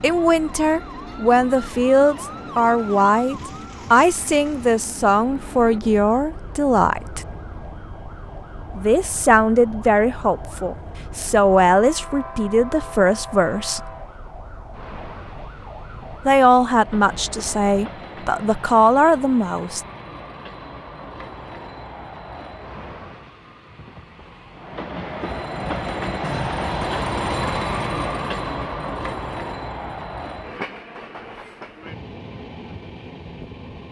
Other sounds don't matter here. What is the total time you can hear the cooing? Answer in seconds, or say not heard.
not heard.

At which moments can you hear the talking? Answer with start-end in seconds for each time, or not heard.
0.0-7.2, 8.8-13.9, 16.2-19.9.